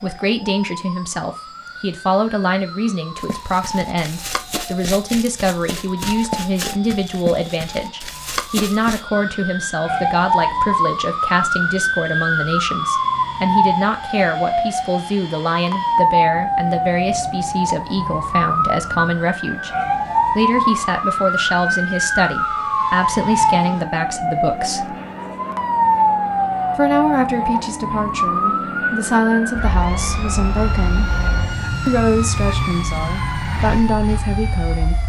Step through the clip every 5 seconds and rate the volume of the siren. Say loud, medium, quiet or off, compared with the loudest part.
quiet, medium, loud, loud, loud, loud, medium.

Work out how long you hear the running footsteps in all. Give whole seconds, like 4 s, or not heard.
6 s.